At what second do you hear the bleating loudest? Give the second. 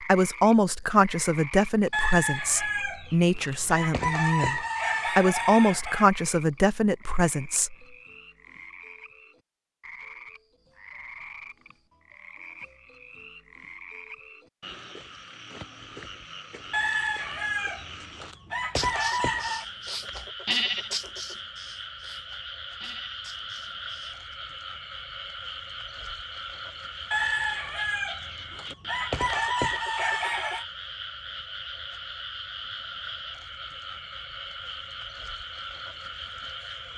21 s.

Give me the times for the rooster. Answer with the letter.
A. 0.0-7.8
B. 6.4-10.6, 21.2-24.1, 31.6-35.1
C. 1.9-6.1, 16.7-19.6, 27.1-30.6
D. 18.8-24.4
C.